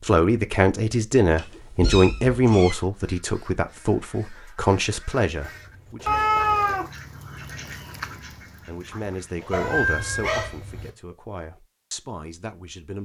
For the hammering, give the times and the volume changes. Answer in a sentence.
You can't hear the hammering here.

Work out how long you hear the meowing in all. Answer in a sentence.
The meowing can be heard for 4 seconds in total.